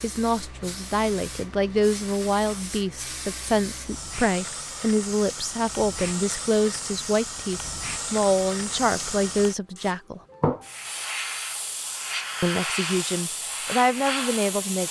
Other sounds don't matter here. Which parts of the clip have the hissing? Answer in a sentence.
The hissing can be heard from 0.0 to 14.8 s.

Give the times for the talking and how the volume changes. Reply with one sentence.
You can hear the talking from 0.0 to 10.2 s, at a steady volume; and briefly from 12.4 to 14.8 s.